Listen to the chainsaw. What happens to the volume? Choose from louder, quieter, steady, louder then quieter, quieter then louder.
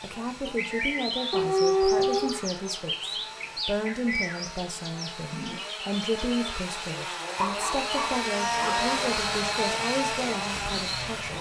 louder.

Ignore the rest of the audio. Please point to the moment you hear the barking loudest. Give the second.
2 s.